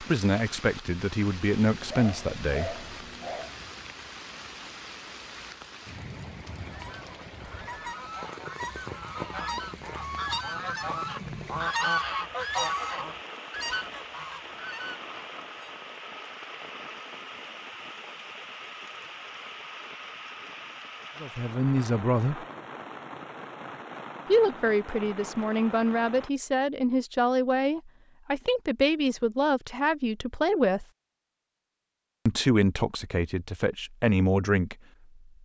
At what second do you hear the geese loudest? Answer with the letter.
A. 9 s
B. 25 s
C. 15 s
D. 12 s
D.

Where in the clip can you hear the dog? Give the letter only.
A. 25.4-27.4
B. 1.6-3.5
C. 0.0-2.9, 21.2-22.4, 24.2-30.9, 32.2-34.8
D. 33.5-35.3
B.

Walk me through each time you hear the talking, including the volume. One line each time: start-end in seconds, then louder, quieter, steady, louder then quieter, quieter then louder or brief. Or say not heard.
0.0-2.9 brief
21.2-22.4 brief
24.2-30.9 steady
32.2-34.8 brief.